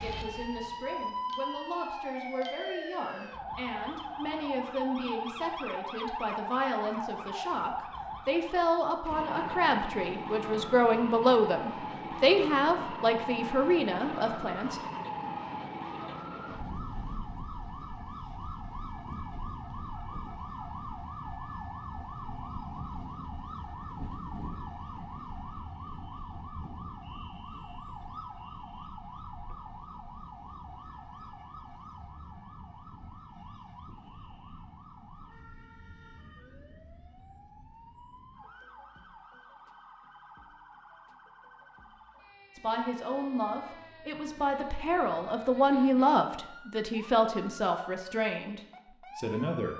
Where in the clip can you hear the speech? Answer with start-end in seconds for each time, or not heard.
0.0-14.8, 42.5-49.7.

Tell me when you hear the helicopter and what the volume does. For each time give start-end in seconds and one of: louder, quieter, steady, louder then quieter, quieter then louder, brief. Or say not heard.
not heard.